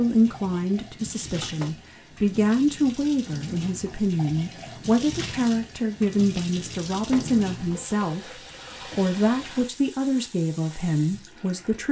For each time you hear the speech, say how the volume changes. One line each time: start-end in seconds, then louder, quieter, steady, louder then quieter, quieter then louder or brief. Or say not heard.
0.0-11.8 steady.